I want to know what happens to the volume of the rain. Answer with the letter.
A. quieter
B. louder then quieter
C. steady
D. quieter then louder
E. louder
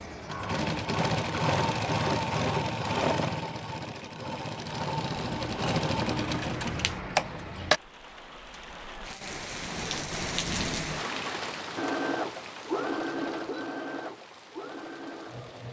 B.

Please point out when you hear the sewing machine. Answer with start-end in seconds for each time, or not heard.
0.0-7.8, 11.8-15.6.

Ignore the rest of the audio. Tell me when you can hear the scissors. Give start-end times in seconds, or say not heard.
5.2-7.0.